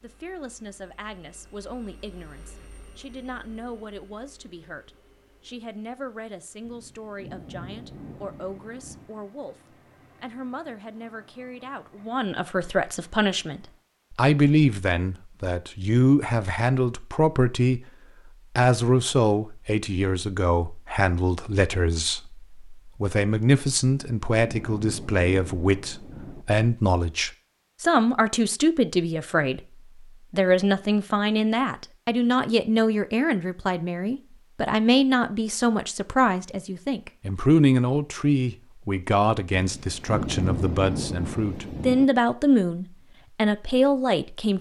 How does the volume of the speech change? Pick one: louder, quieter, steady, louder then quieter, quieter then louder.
louder.